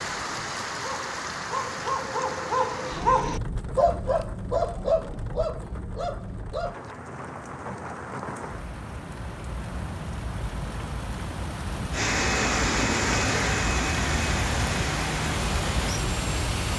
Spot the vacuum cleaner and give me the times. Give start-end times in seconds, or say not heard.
11.9-16.7.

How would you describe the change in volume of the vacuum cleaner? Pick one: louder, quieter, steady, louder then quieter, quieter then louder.
quieter.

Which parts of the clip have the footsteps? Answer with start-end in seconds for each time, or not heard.
not heard.